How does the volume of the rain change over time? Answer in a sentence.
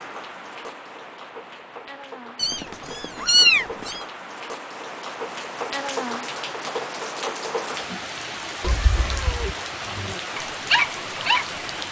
The loudness of the rain goes up.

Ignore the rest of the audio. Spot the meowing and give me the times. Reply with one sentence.
The meowing can be heard from 2.4 to 4.0 s and from 8.6 to 9.6 s.